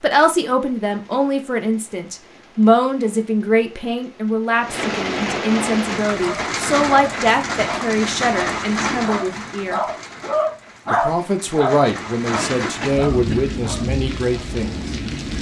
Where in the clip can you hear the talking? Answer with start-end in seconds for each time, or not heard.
0.0-9.8, 10.9-14.8.